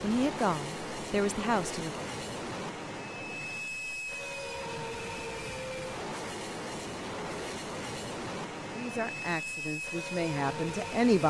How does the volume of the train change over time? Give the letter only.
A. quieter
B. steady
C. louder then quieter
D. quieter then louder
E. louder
B.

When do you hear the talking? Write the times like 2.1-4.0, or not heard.
0.0-2.0, 8.7-11.2.